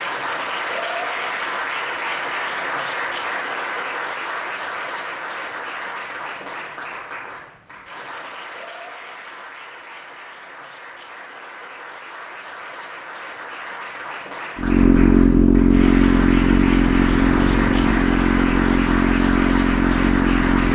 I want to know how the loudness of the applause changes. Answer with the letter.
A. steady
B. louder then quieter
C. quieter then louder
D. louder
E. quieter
C.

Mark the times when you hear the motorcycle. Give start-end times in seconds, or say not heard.
14.6-20.6.